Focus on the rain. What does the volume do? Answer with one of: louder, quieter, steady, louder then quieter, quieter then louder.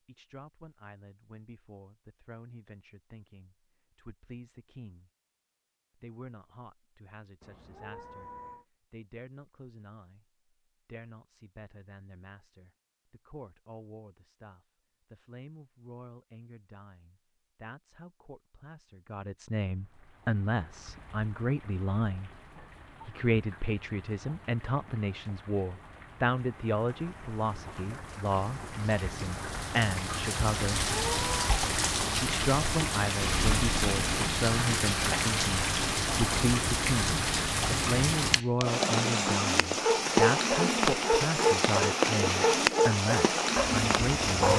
louder.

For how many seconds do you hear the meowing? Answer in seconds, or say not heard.
2 s.